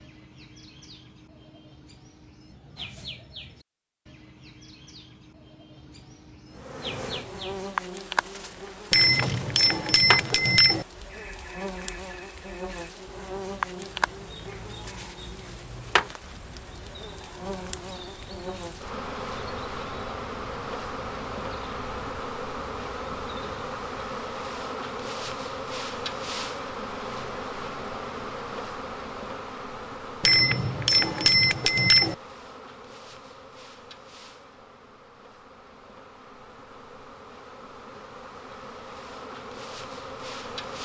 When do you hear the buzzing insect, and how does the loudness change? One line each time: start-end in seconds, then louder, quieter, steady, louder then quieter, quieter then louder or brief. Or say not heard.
6.5-40.8 quieter.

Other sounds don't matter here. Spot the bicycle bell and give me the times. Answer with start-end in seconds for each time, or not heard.
8.9-10.8, 30.2-32.1.